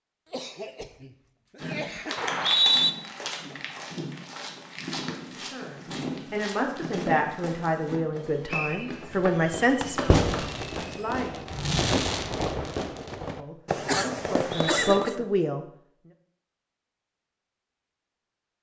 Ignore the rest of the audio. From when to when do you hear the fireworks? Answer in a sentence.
The fireworks can be heard from 9.3 to 15.2 s.